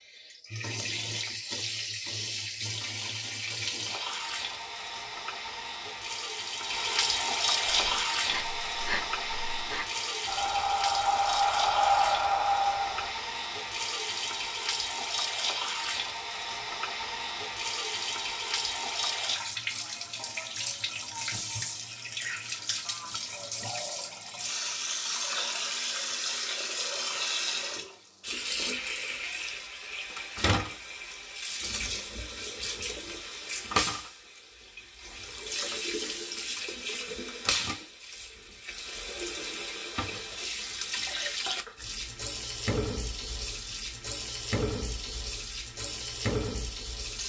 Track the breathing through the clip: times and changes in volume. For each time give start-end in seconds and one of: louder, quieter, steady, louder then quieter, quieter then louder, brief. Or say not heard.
7.6-13.2 louder.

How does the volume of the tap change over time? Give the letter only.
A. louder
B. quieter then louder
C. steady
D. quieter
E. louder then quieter
C.